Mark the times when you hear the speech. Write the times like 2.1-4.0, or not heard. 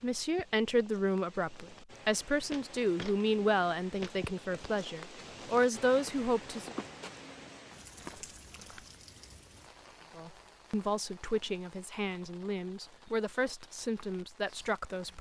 0.0-6.8, 10.2-15.1.